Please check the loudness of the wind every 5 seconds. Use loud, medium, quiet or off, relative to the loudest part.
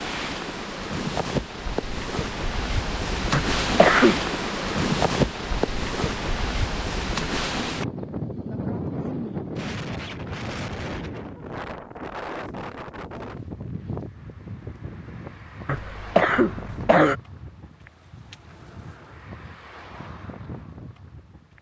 loud, loud, medium, quiet, quiet.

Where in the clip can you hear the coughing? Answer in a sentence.
The coughing can be heard from 3.3 to 4.3 s and from 15.7 to 17.1 s.